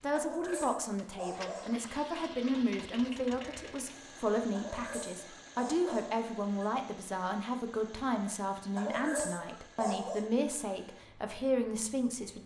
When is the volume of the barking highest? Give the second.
9 s.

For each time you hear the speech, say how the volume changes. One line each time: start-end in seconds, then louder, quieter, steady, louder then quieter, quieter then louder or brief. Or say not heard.
0.0-12.4 steady.